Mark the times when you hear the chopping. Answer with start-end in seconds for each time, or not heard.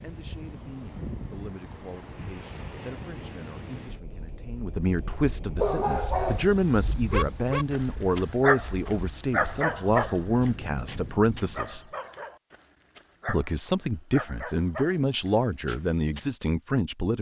not heard.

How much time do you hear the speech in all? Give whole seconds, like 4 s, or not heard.
16 s.